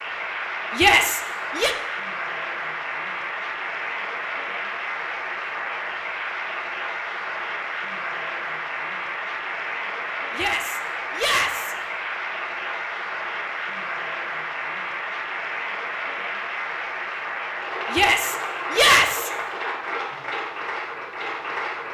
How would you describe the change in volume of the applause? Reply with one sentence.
The volume of the applause stays about the same.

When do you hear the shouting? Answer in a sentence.
You can hear the shouting from 0.8 to 1.8 s, from 10.3 to 11.8 s and from 17.9 to 19.3 s.